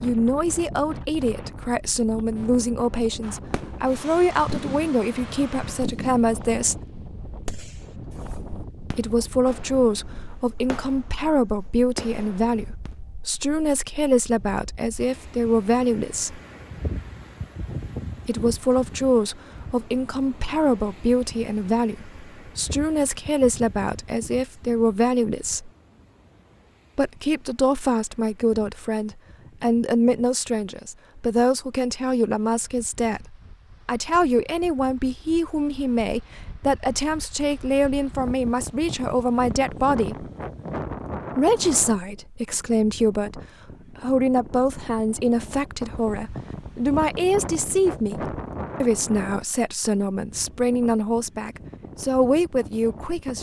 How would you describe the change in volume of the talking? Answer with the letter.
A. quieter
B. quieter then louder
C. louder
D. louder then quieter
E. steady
E.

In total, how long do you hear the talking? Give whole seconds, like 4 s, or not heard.
47 s.